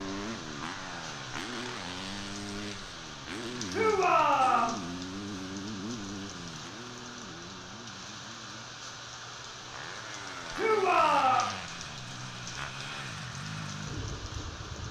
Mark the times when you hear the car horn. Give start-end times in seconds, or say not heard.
not heard.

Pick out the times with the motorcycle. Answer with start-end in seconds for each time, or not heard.
0.0-14.8.